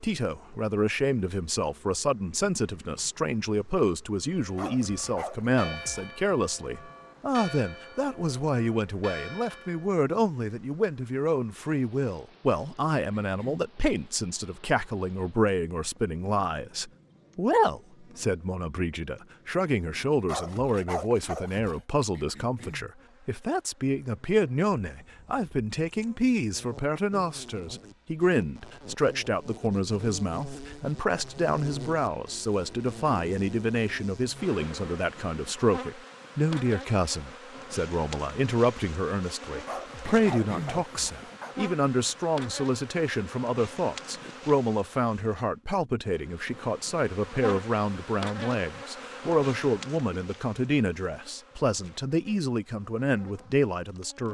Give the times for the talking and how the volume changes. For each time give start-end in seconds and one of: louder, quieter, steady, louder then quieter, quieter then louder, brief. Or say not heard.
0.0-54.2 steady.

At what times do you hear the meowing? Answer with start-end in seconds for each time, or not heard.
not heard.